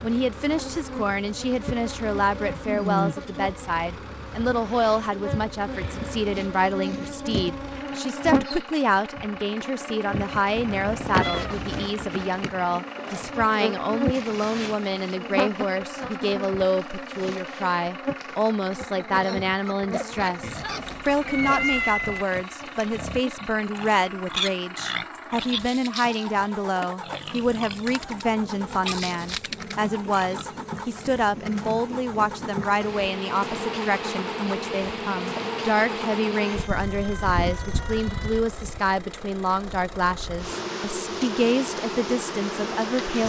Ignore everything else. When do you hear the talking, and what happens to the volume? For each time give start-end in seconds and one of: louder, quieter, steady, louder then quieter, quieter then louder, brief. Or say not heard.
0.0-43.2 steady.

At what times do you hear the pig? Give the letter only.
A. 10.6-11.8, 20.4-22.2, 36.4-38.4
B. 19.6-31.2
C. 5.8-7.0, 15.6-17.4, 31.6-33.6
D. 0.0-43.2
B.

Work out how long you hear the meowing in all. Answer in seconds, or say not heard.
5 s.